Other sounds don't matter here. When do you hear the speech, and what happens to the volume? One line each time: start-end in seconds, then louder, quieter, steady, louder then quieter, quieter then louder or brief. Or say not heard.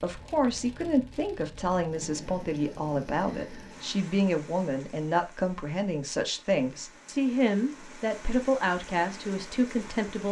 0.0-10.2 steady.